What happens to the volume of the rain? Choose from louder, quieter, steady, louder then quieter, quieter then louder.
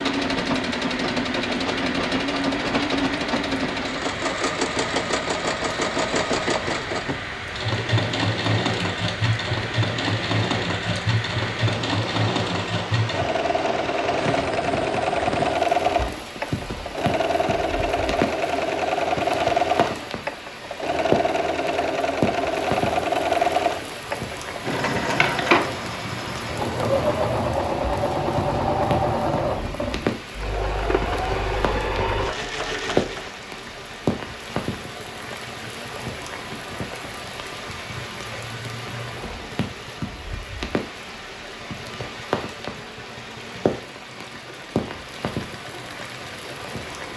steady.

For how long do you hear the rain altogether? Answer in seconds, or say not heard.
47 s.